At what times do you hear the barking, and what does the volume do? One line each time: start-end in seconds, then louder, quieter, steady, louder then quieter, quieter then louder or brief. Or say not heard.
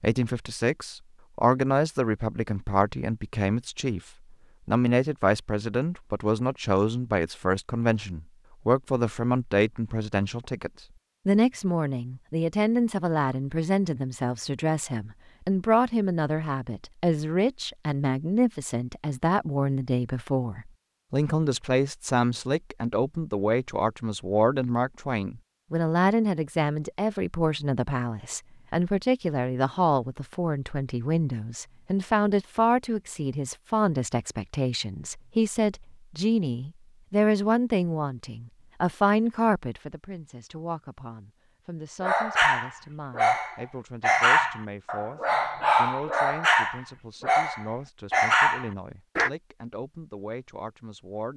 42.0-49.3 steady.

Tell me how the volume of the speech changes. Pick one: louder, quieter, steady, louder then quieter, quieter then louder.
quieter.